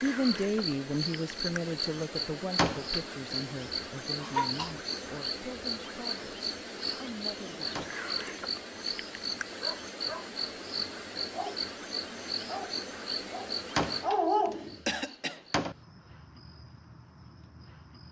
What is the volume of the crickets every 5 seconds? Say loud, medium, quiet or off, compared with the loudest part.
loud, loud, loud, quiet.